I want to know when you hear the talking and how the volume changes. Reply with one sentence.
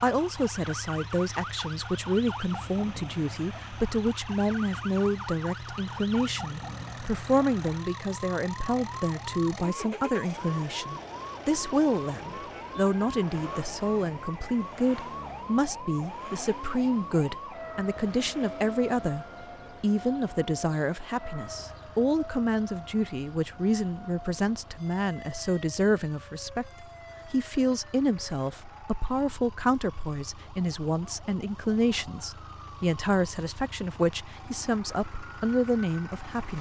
The talking can be heard from 0.0 to 36.5 s, at a steady volume.